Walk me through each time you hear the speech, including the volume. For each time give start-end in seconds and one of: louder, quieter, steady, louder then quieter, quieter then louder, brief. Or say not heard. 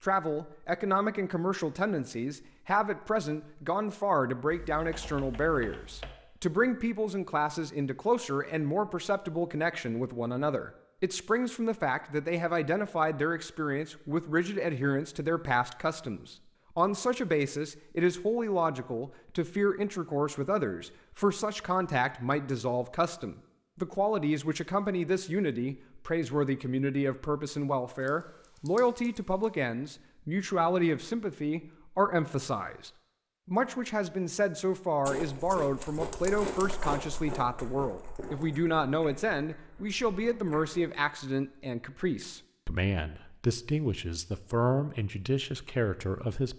0.0-46.5 steady.